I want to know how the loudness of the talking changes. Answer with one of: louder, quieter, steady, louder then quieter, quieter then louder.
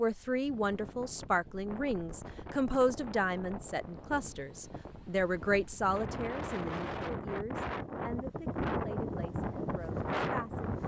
quieter.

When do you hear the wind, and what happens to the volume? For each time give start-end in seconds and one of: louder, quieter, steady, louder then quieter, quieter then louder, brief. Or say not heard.
0.0-10.8 louder.